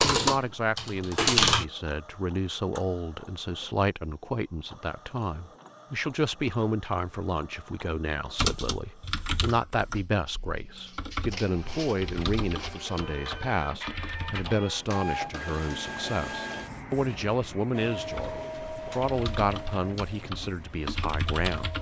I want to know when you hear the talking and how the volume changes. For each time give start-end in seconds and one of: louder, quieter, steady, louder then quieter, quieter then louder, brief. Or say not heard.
0.0-21.7 steady.